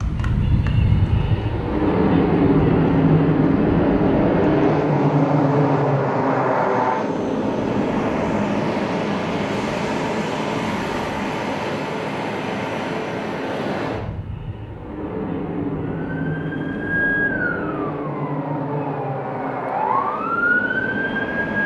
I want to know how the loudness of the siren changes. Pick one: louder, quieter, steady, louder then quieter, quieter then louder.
quieter then louder.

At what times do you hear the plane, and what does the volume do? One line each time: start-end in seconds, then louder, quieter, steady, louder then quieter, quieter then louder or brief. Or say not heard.
0.0-21.6 quieter.